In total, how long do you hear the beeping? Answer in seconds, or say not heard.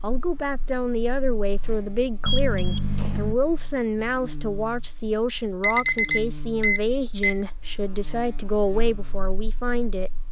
3 s.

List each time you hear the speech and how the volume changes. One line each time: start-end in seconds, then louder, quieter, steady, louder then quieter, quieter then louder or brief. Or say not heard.
0.0-10.1 steady.